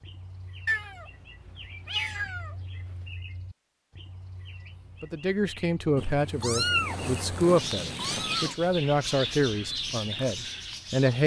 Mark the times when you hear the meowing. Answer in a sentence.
You can hear the meowing from 0.7 to 3.0 s and from 6.0 to 8.6 s.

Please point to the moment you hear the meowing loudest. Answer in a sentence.
The loudest moment of the meowing is at 7 seconds.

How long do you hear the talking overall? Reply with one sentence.
The talking can be heard for 6 seconds in total.